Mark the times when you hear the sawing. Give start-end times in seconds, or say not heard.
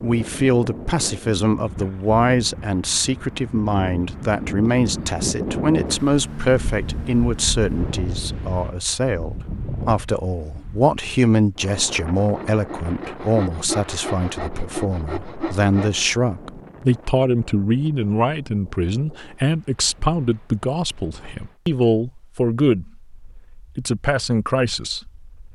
12.3-16.1.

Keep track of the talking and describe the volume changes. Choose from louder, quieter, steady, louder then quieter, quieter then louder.
steady.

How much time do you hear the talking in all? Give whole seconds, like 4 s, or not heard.
25 s.